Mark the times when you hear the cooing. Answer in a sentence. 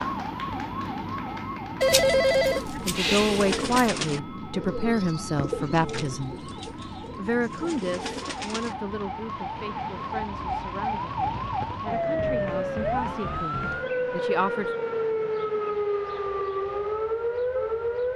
The cooing can be heard from 1.9 to 8.8 s.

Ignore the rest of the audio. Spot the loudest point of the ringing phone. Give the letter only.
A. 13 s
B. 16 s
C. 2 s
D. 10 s
C.